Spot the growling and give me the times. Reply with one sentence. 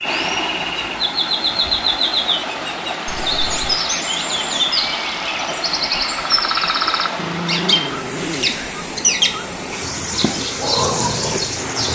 You can hear the growling from 7.2 to 8.7 s.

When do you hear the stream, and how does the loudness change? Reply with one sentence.
The stream can be heard from 0.0 to 11.9 s, at a steady volume.